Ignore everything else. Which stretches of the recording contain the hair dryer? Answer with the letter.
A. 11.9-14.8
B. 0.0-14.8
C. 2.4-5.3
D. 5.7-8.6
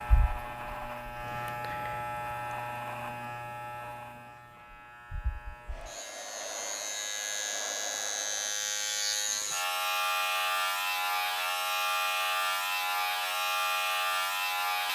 D.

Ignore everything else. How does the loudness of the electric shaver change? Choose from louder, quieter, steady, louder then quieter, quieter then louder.
quieter then louder.